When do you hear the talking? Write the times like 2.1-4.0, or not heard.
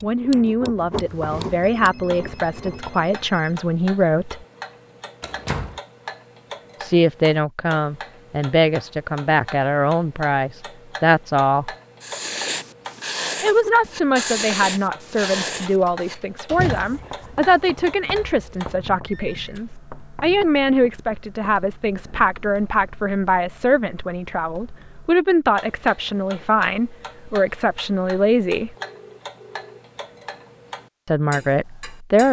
0.0-4.4, 6.8-11.7, 13.4-28.7, 31.1-32.2.